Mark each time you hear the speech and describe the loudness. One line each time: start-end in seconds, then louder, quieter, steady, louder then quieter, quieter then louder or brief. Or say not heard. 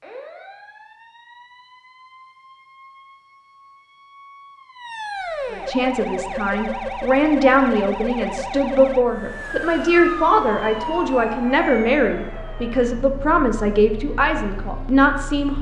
5.5-15.5 steady.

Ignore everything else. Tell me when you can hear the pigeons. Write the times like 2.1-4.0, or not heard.
not heard.